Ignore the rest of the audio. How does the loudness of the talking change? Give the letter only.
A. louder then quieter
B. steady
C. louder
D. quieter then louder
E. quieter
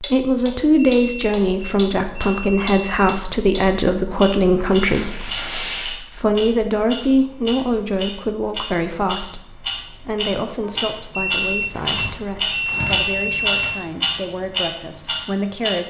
E.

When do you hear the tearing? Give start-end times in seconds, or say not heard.
4.7-6.0, 11.7-13.7.